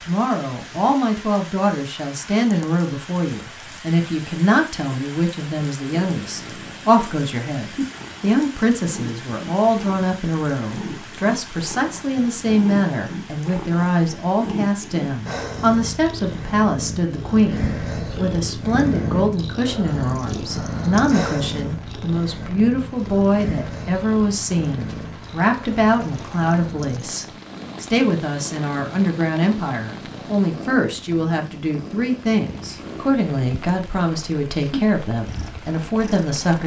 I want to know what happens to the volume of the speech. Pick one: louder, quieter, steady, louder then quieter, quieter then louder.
steady.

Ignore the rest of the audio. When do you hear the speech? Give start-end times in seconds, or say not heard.
0.0-36.6.